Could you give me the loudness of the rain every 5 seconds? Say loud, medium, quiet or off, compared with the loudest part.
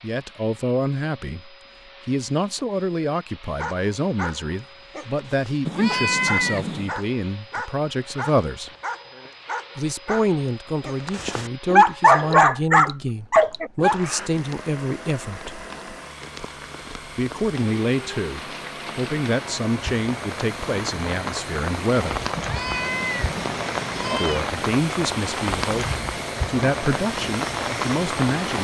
off, off, quiet, medium, loud, loud.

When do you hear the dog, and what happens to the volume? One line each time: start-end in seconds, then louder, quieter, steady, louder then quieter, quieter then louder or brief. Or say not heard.
3.5-13.9 louder.